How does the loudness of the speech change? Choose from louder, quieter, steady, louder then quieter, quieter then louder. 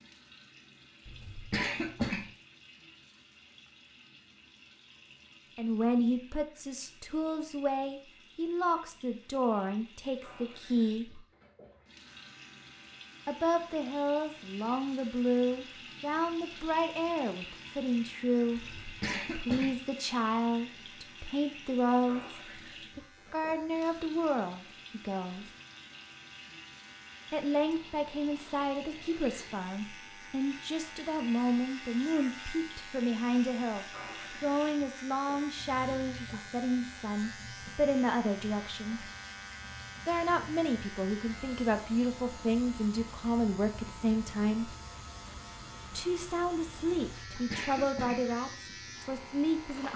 steady.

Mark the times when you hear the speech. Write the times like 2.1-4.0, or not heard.
5.5-11.2, 13.2-25.4, 27.3-39.0, 40.0-44.8, 45.9-49.9.